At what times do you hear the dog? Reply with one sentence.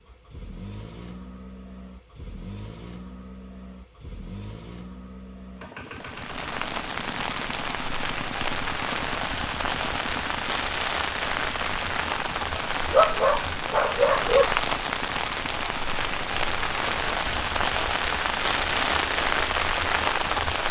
The dog can be heard from 12.6 to 14.5 s.